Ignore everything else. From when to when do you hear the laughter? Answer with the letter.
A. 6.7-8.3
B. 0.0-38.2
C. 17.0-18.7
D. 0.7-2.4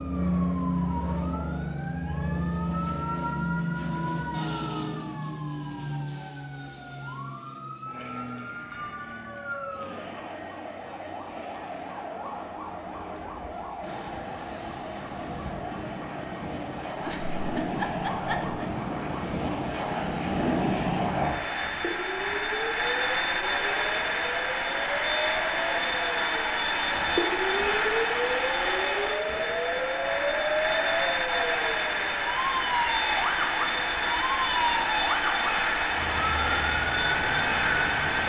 C.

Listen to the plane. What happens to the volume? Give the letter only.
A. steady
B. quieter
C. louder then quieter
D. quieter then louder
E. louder
D.